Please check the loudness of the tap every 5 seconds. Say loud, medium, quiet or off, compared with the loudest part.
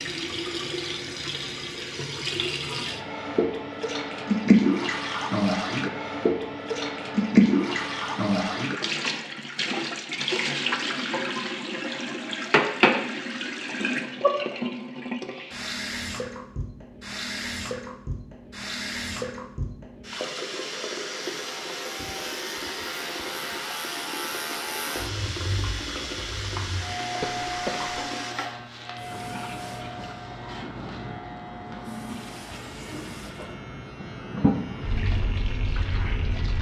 loud, loud, loud, medium, medium, medium, medium, medium.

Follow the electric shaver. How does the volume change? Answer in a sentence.
The loudness of the electric shaver goes down.